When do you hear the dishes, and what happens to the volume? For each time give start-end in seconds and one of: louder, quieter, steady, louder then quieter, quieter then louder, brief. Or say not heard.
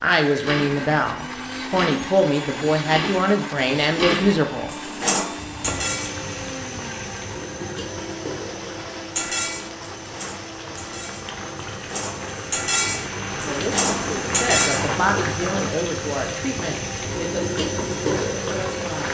0.3-6.2 louder
9.2-14.9 louder.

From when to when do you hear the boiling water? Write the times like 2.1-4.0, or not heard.
5.3-19.0.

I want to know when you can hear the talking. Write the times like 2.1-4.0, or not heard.
0.0-4.8, 13.4-19.0.